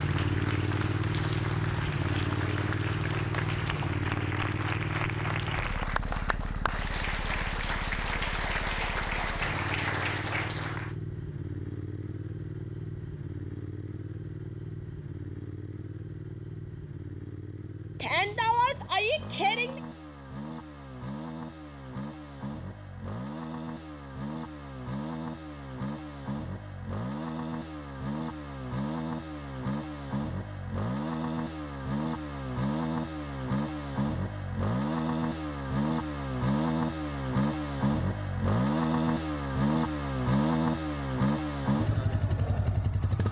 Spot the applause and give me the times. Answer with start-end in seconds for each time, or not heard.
0.0-10.9.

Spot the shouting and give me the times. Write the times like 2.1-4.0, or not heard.
18.0-19.8.